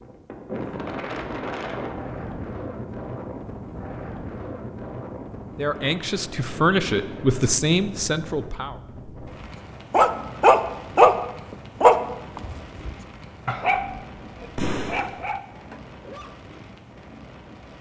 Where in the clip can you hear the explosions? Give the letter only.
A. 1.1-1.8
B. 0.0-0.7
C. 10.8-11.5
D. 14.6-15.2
D.